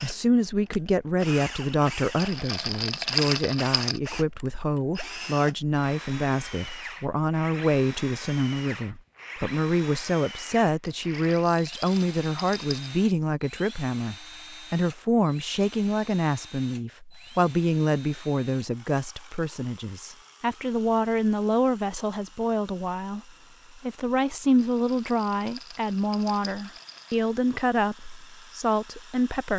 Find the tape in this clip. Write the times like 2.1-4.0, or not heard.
not heard.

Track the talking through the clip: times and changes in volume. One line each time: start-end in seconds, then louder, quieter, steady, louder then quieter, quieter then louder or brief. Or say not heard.
0.0-29.5 steady.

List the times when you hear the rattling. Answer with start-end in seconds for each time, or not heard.
2.1-4.0, 10.8-12.8, 24.6-27.3.